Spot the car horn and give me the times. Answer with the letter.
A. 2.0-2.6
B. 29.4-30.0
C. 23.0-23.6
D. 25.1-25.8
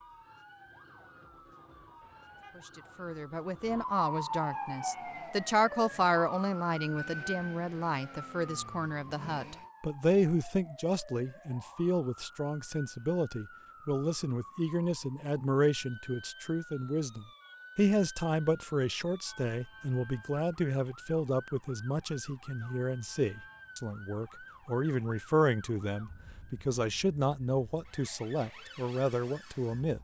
A.